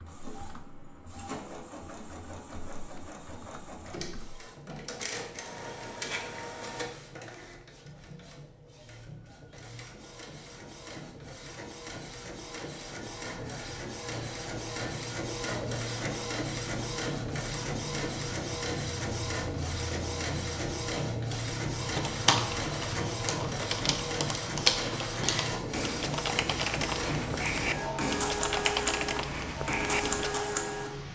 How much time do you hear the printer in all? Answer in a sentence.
You can hear the printer for 31 seconds altogether.